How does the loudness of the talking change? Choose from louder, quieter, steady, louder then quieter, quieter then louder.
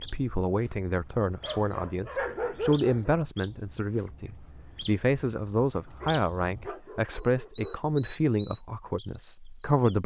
steady.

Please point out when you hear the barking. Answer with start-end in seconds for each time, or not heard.
1.4-3.2, 6.0-7.8.